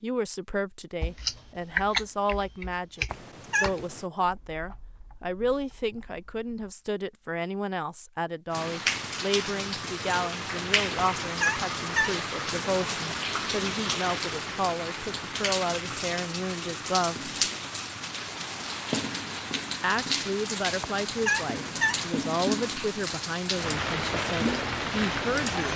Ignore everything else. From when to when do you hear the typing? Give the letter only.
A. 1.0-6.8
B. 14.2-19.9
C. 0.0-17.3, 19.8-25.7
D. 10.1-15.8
A.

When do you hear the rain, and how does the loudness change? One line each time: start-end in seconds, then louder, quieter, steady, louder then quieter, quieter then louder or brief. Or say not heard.
8.5-25.7 steady.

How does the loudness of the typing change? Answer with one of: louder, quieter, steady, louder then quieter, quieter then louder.
quieter.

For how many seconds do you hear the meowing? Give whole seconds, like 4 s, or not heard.
3 s.